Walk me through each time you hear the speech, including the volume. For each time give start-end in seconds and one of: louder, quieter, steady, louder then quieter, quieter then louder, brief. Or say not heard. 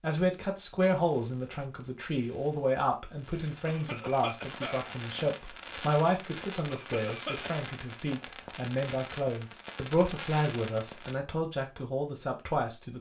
0.0-12.9 steady.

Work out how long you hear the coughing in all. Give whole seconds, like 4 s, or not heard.
2 s.